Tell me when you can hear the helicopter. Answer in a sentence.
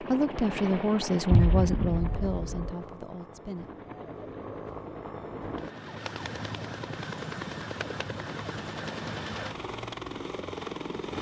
You can hear the helicopter from 0.0 to 11.1 s.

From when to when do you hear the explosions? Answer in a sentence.
You can hear the explosions from 1.3 to 2.8 s.